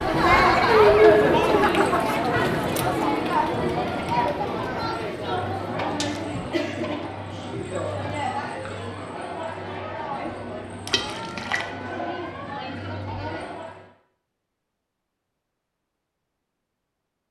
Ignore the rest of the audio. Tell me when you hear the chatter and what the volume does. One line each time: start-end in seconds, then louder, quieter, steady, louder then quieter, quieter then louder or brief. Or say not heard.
0.0-13.8 quieter.